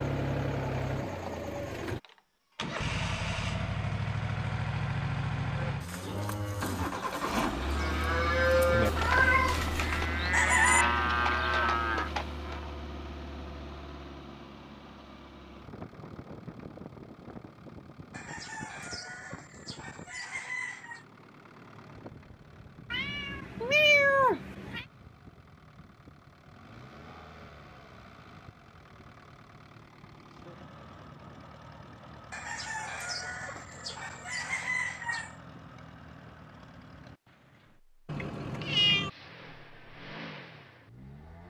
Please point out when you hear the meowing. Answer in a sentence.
You can hear the meowing from 8.8 to 10.1 s, from 22.9 to 24.9 s and from 38.0 to 39.1 s.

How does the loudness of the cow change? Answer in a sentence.
The volume of the cow goes up.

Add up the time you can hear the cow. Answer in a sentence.
You can hear the cow for 7 seconds altogether.